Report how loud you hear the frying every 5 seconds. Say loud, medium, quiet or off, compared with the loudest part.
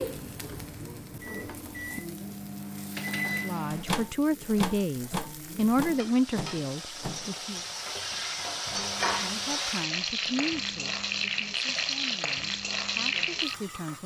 quiet, loud, loud.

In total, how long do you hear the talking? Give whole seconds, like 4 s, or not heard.
9 s.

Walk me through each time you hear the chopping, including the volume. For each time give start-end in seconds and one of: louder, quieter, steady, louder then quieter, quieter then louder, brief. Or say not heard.
not heard.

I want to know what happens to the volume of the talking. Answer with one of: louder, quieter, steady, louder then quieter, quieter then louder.
quieter.